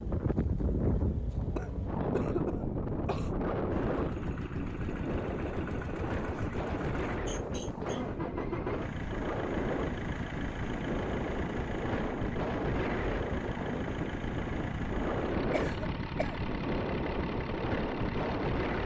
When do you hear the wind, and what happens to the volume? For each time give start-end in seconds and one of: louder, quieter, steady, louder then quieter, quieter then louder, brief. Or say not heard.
0.0-18.8 steady.